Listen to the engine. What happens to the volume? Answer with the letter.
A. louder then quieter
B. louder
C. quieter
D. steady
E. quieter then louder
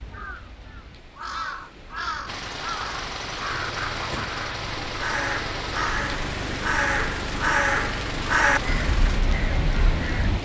D.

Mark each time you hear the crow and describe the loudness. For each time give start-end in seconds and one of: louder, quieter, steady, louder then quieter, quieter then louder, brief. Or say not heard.
0.0-10.3 louder.